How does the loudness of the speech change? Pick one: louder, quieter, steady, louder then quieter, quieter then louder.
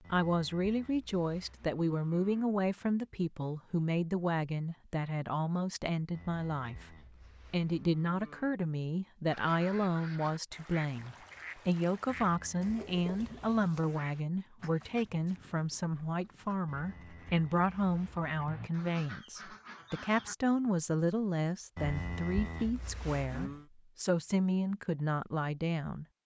steady.